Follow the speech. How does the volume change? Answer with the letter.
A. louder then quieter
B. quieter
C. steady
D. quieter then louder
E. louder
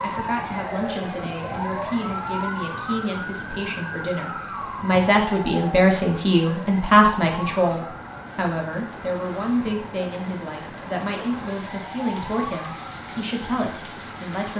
A.